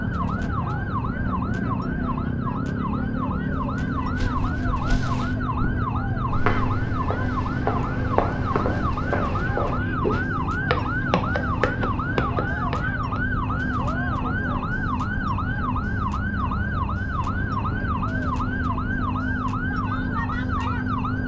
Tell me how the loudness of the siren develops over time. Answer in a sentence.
The volume of the siren stays about the same.